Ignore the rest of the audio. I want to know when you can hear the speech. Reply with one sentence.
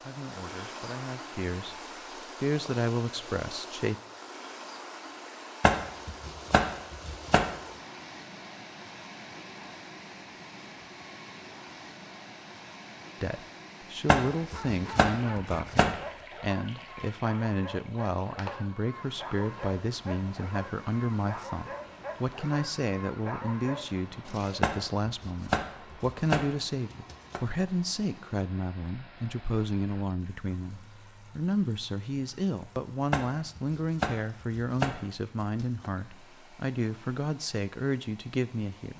You can hear the speech from 0.0 to 1.8 s, from 2.4 to 4.0 s and from 13.2 to 38.9 s.